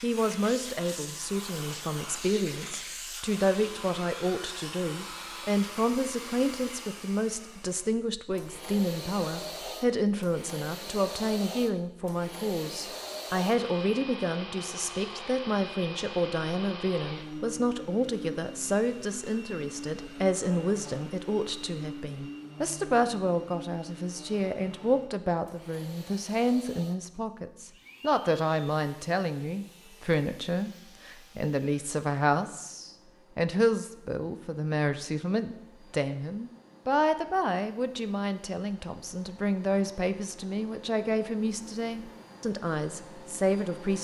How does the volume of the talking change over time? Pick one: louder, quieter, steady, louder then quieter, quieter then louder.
steady.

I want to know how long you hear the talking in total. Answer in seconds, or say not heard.
44 s.